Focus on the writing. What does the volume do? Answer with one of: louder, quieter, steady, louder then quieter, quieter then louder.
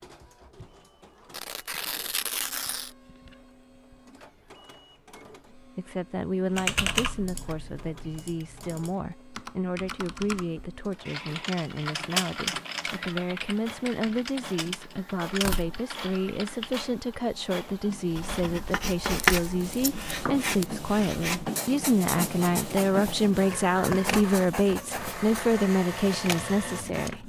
quieter.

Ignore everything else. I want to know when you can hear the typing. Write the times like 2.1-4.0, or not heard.
6.5-16.8.